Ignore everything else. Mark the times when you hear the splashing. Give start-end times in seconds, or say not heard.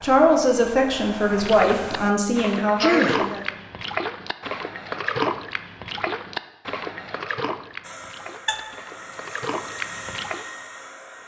1.2-10.4.